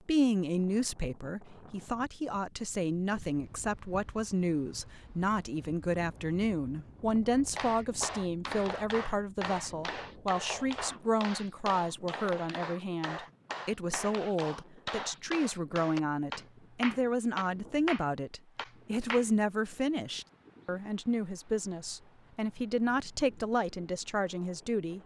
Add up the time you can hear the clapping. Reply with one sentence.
You can hear the clapping for 12 seconds altogether.